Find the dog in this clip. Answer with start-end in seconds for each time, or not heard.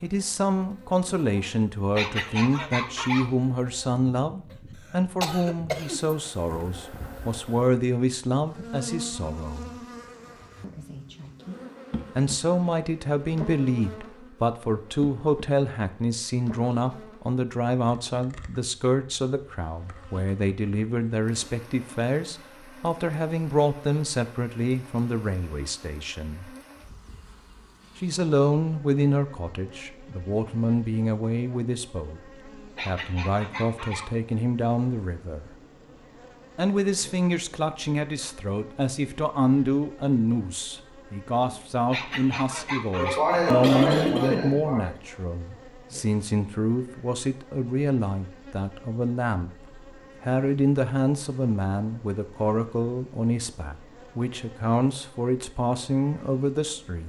1.9-3.3, 32.8-34.1, 41.9-43.2.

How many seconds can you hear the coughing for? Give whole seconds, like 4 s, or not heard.
3 s.